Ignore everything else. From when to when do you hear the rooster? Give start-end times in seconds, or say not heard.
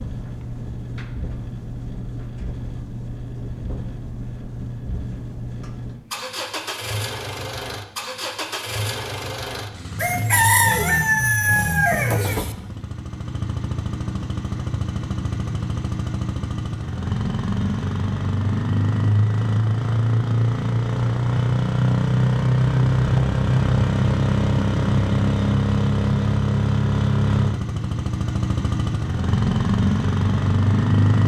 9.9-12.6.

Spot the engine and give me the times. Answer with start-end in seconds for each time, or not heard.
0.0-31.2.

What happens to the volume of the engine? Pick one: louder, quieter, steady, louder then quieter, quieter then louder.
louder.